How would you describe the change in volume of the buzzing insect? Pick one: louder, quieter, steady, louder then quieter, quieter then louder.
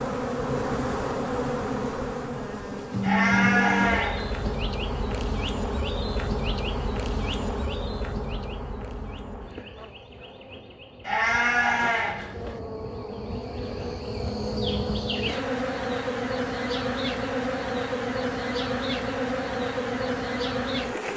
quieter then louder.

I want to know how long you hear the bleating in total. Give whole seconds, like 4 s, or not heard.
3 s.